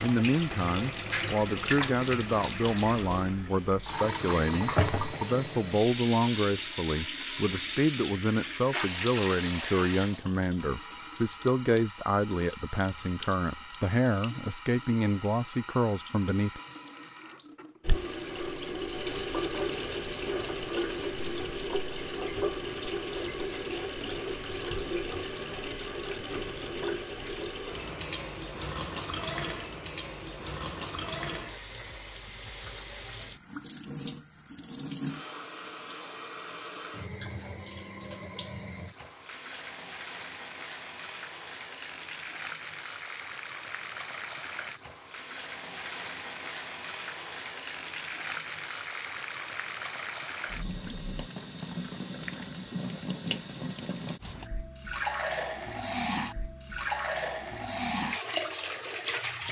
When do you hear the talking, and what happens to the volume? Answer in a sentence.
You can hear the talking from 0.0 to 16.6 s, at a steady volume.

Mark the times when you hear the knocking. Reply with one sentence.
The knocking can be heard from 4.6 to 5.2 s.